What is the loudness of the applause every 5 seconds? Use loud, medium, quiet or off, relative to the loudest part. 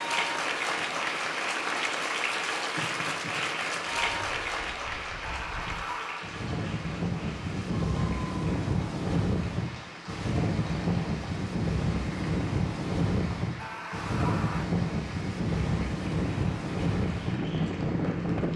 loud, medium, quiet, quiet.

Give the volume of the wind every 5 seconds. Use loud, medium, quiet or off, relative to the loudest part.
quiet, loud, loud, loud.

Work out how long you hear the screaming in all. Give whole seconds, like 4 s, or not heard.
2 s.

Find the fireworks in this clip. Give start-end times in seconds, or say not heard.
not heard.